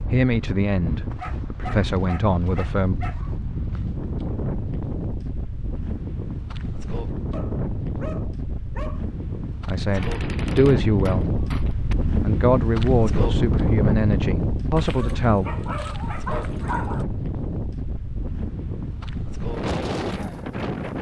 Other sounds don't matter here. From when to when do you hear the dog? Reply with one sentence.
The dog can be heard from 1.1 to 3.3 s, from 7.3 to 9.1 s and from 14.8 to 17.1 s.